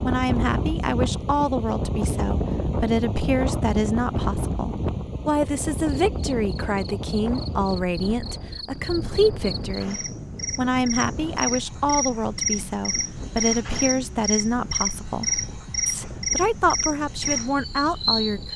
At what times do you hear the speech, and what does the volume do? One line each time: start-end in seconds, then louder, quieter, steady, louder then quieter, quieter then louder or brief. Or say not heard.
0.0-18.5 steady.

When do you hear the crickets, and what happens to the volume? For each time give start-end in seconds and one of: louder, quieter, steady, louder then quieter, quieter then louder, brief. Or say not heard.
5.8-18.5 louder.